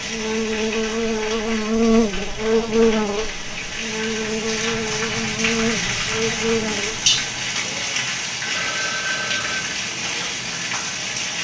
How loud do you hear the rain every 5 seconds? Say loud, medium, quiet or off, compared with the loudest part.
medium, loud, loud.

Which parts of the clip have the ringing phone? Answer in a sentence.
You can hear the ringing phone from 8.5 to 9.7 s.